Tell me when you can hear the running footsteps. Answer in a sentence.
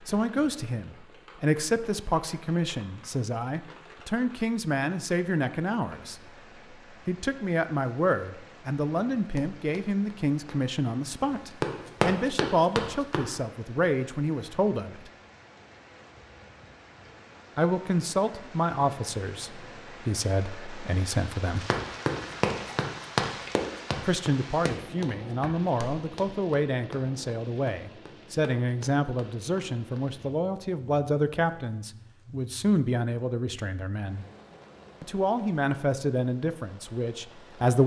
You can hear the running footsteps from 9.3 to 13.3 s and from 21.6 to 30.0 s.